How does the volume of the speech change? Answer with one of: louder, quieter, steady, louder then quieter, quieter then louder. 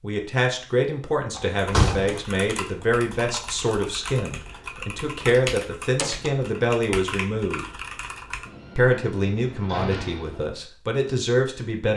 steady.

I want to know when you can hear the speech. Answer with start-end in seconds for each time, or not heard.
0.0-7.7, 8.8-11.9.